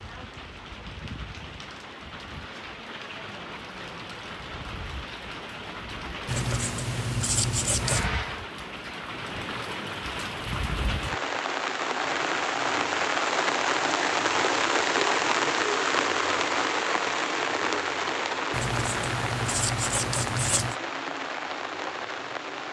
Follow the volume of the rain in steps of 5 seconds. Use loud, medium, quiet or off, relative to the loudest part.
quiet, medium, loud, loud, medium.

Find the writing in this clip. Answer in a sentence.
You can hear the writing from 6.2 to 8.1 s and from 18.5 to 20.8 s.